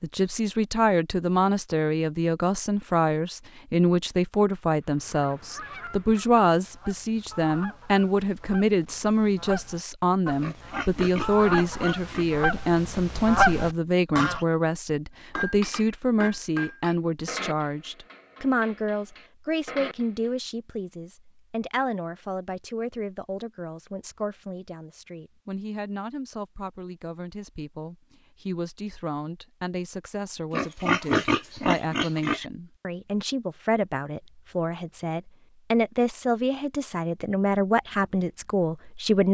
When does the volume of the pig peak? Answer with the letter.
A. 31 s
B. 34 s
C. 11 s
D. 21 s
A.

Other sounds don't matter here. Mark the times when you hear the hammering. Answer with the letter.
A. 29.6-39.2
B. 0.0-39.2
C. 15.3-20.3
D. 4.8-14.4
C.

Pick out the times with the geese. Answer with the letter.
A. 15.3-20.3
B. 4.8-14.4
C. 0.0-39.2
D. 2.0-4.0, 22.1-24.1
B.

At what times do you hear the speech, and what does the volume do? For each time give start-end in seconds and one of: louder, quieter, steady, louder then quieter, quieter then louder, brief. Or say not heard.
0.0-39.2 quieter then louder.